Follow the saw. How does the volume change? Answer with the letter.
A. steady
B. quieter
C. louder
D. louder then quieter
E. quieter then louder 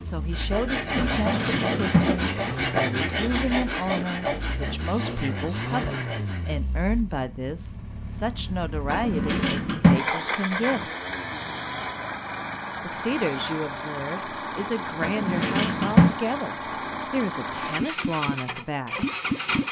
B.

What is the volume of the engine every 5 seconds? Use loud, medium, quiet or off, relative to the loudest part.
medium, medium, loud, loud.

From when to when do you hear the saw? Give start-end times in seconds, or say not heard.
0.3-6.5.